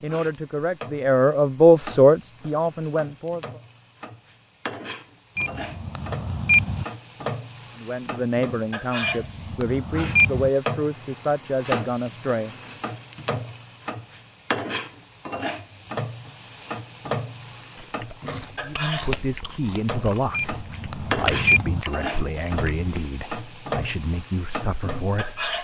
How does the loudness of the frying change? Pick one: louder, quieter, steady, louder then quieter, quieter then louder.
louder.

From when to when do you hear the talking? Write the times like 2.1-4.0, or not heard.
0.0-3.6, 7.8-12.5, 18.6-25.4.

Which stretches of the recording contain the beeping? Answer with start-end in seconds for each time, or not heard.
5.3-6.8, 9.0-10.5, 20.3-21.9.